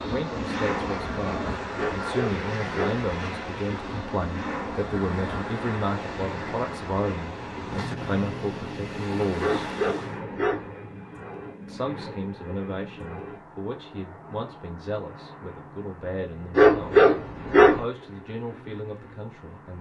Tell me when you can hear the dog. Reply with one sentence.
The dog can be heard from 1.8 to 3.0 s, from 9.3 to 10.7 s and from 16.6 to 17.9 s.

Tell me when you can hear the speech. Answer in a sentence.
The speech can be heard from 0.0 to 9.6 s and from 11.7 to 19.7 s.